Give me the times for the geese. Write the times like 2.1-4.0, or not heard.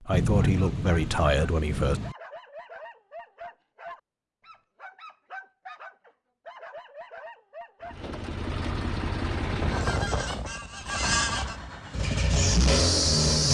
9.3-11.7.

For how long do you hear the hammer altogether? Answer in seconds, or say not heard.
not heard.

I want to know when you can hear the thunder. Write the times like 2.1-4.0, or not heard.
0.1-2.1.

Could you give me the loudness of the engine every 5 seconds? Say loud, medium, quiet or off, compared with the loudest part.
off, medium, loud.